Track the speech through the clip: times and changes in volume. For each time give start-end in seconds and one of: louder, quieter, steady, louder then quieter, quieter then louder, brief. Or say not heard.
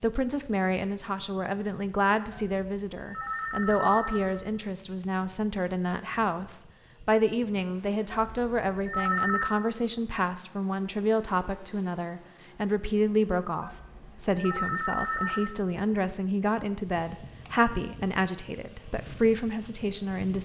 0.0-20.3 steady.